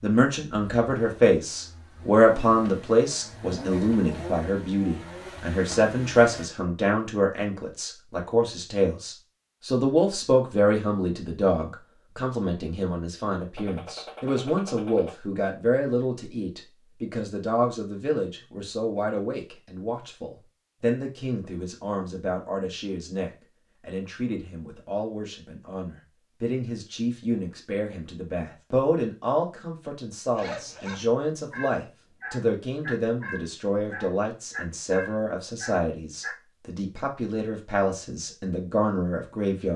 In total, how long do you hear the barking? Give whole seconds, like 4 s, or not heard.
6 s.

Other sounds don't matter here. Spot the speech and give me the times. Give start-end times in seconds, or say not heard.
0.0-39.7.